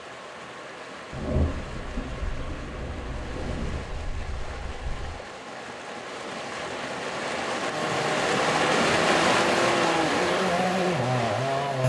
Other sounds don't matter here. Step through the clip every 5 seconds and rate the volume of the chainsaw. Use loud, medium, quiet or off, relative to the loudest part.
off, medium, loud.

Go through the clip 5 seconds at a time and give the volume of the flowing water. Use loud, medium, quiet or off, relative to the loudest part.
quiet, loud, loud.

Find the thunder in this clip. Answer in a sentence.
You can hear the thunder from 1.1 to 5.2 s.